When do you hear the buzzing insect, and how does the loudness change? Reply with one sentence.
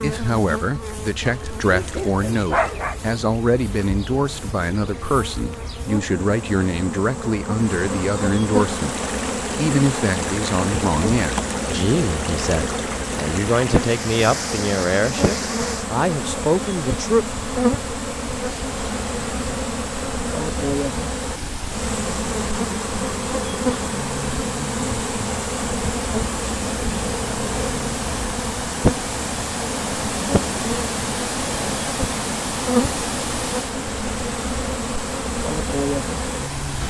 You can hear the buzzing insect from 0.0 to 36.8 s, getting louder.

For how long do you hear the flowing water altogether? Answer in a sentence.
You can hear the flowing water for 28 seconds altogether.